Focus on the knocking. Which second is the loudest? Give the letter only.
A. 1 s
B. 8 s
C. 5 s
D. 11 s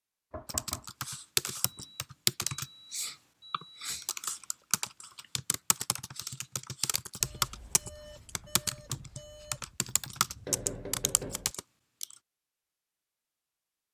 D.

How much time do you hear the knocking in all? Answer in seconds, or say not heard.
2 s.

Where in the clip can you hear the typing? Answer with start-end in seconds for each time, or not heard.
0.5-12.2.